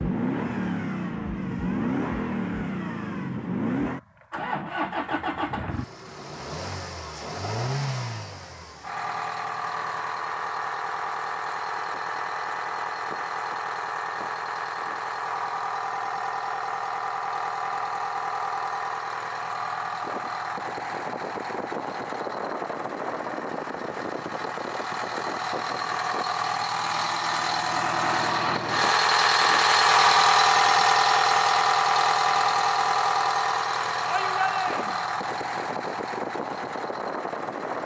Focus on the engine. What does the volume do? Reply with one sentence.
The volume of the engine goes up.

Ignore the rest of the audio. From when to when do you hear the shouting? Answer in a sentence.
You can hear the shouting from 34.0 to 35.0 s.